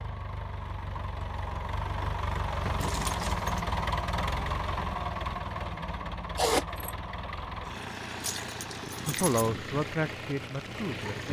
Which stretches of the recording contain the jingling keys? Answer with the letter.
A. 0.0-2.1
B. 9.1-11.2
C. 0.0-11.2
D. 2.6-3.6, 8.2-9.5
D.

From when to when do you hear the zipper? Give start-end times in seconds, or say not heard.
6.3-6.9.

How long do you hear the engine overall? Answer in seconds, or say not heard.
11 s.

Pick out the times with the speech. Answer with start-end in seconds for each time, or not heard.
9.1-11.2.